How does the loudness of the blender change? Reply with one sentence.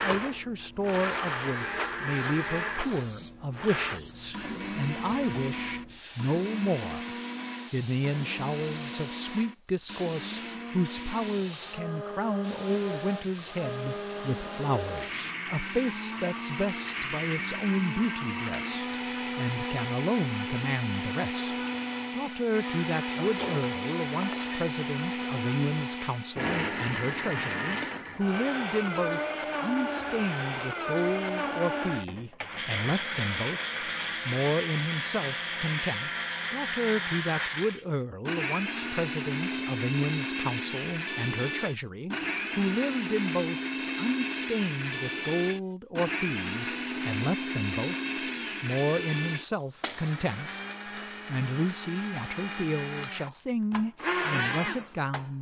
The volume of the blender stays about the same.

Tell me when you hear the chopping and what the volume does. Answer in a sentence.
The chopping can't be heard in this clip.